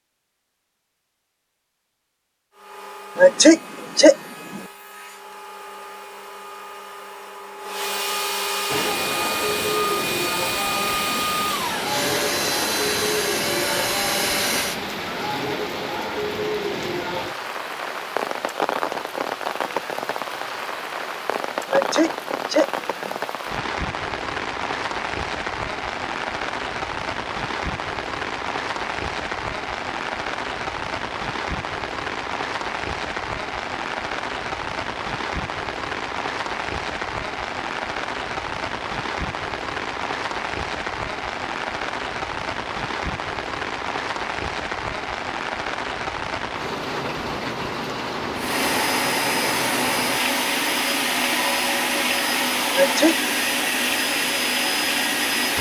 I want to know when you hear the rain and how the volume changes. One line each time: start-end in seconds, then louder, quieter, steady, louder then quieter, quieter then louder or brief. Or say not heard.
8.7-55.5 steady.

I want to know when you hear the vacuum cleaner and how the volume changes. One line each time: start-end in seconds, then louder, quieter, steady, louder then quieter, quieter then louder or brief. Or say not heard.
2.5-14.8 louder
48.4-55.5 steady.